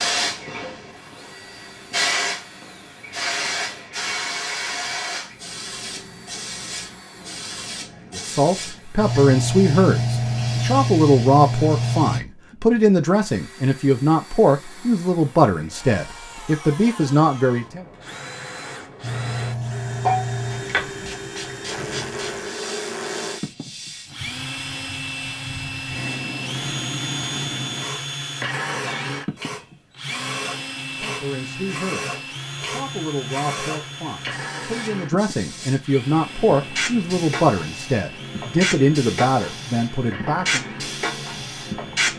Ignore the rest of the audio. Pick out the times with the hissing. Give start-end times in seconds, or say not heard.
0.0-12.2, 19.0-42.1.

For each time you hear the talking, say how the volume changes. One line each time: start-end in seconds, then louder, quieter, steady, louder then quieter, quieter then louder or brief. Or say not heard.
8.1-17.9 steady
31.0-40.7 louder.